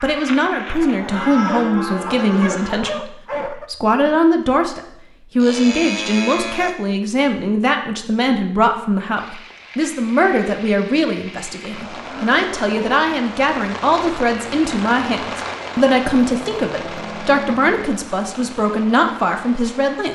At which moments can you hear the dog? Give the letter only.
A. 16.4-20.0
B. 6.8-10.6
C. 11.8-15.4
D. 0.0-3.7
D.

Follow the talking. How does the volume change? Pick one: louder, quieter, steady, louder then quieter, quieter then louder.
steady.